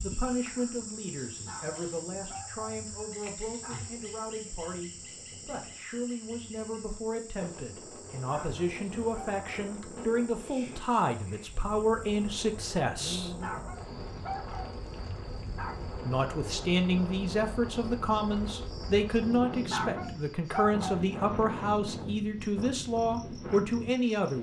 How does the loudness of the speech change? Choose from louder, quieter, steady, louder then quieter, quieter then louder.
louder.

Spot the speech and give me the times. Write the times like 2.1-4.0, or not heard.
0.0-13.3, 15.9-24.3.